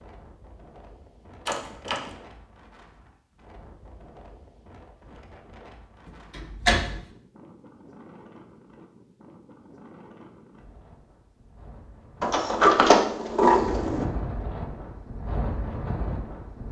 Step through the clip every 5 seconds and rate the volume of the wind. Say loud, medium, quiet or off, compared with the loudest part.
quiet, quiet, medium, loud.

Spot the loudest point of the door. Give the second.
13 s.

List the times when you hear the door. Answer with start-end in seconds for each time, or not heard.
1.4-2.1, 6.0-7.0, 12.2-14.1.